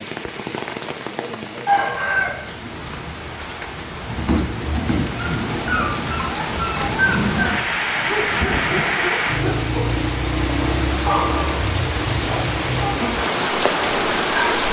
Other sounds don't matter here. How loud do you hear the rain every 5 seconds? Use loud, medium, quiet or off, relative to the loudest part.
medium, loud, loud.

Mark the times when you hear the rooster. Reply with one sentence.
The rooster can be heard from 1.6 to 2.9 s.